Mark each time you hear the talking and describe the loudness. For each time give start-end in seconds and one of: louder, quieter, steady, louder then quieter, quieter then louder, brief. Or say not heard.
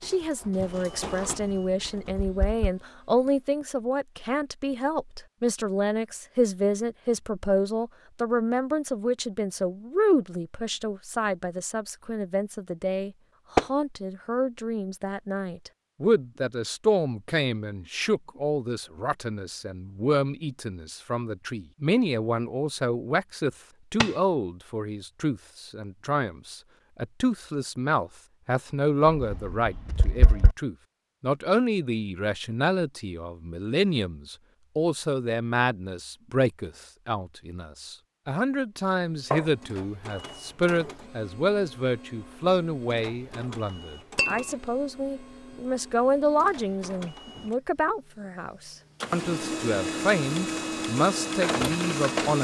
0.0-52.3 steady.